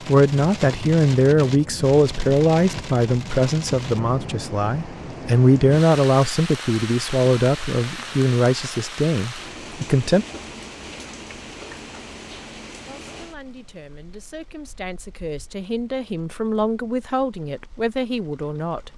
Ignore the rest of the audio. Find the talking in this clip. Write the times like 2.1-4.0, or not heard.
0.1-10.2, 12.8-18.9.